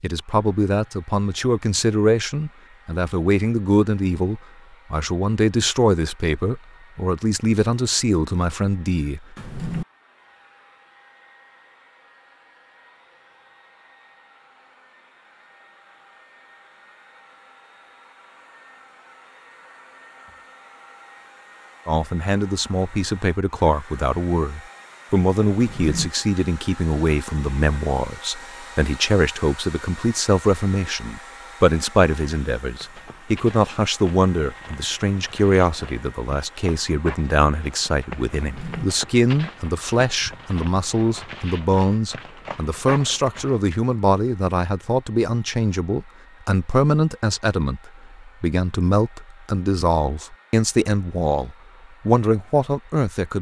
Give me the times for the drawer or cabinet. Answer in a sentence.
You can hear the drawer or cabinet from 9.3 to 9.8 s, from 25.6 to 26.1 s and from 38.4 to 38.9 s.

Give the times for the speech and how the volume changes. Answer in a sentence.
The speech can be heard from 0.0 to 9.3 s, at a steady volume; and from 21.9 to 53.3 s, at a steady volume.